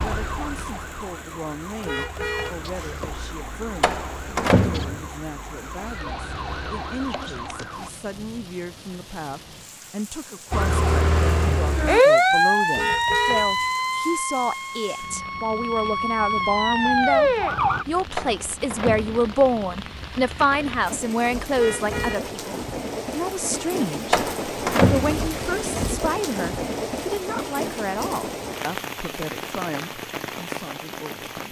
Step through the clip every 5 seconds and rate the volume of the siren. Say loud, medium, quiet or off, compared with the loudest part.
quiet, quiet, loud, loud, off, off, off.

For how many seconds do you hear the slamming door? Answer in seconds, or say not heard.
4 s.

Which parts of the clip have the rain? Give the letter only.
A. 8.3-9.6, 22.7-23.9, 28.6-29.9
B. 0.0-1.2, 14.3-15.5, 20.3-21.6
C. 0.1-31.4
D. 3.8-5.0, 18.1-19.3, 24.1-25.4
C.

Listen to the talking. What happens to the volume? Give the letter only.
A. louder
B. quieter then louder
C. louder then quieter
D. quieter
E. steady
C.